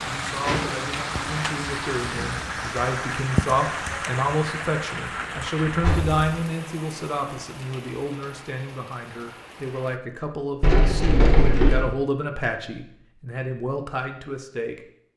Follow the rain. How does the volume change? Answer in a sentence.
The volume of the rain goes down.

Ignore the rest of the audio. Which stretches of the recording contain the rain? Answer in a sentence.
The rain can be heard from 0.0 to 10.0 s.